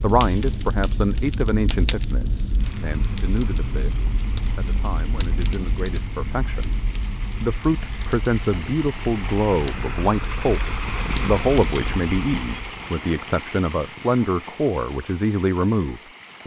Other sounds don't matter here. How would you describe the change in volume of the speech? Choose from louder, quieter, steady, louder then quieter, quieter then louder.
quieter then louder.